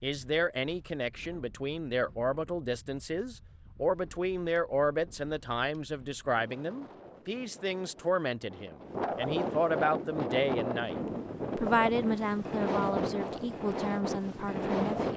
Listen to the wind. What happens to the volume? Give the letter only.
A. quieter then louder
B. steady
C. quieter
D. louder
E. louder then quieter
D.